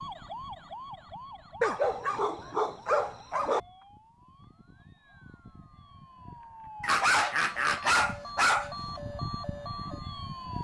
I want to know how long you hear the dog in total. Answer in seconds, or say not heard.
4 s.